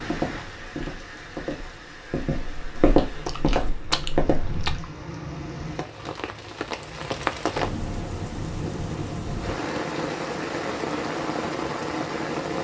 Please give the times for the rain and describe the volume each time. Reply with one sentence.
You can hear the rain from 0.0 to 12.5 s, getting louder.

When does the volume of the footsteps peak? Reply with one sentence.
The volume of the footsteps peaks at 3 seconds.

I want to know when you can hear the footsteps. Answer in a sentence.
You can hear the footsteps from 0.0 to 4.5 s.